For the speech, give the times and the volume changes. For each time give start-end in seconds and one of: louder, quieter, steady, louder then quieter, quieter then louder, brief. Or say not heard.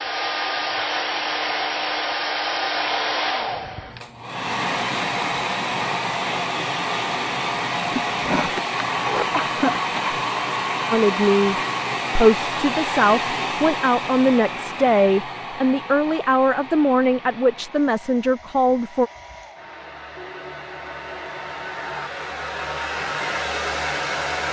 10.9-11.6 brief
12.2-19.1 steady.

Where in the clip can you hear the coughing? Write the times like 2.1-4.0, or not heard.
7.9-10.2.